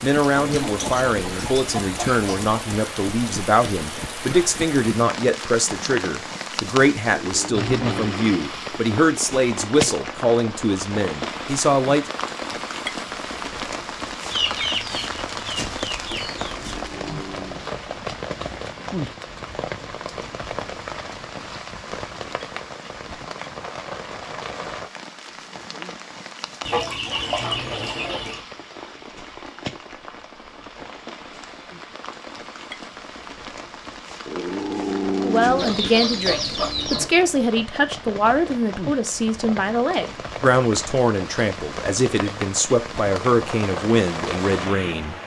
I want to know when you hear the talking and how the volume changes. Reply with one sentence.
The talking can be heard from 0.0 to 12.1 s, at a steady volume; and from 35.2 to 45.1 s, at a steady volume.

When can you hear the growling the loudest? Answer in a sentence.
The loudest moment of the growling is at 35 seconds.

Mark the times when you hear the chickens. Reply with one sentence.
The chickens can be heard from 0.3 to 2.5 s, from 14.3 to 16.7 s, from 26.6 to 28.4 s and from 35.5 to 37.1 s.